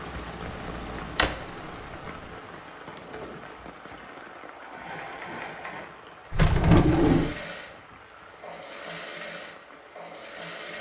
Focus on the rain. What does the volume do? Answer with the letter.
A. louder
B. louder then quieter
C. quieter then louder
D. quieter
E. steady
D.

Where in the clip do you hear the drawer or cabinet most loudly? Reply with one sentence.
The volume of the drawer or cabinet peaks at 7 seconds.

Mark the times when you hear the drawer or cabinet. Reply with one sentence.
The drawer or cabinet can be heard from 0.5 to 1.4 s and from 6.3 to 7.3 s.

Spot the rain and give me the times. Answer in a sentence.
The rain can be heard from 0.0 to 10.7 s.